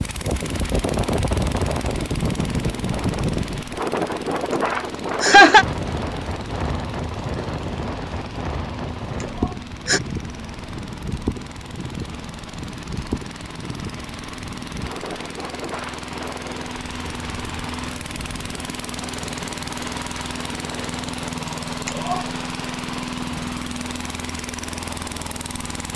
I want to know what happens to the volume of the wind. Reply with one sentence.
The volume of the wind goes down.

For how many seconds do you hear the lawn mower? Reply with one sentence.
You can hear the lawn mower for 26 seconds altogether.